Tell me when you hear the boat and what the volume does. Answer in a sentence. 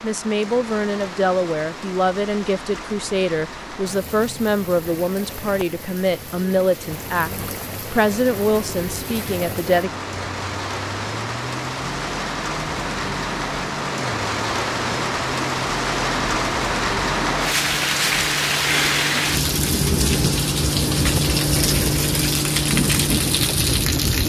You can hear the boat from 6.8 to 24.2 s, getting louder.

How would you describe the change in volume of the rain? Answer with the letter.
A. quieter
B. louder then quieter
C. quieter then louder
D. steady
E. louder
E.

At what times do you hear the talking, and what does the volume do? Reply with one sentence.
You can hear the talking from 0.0 to 9.9 s, at a steady volume.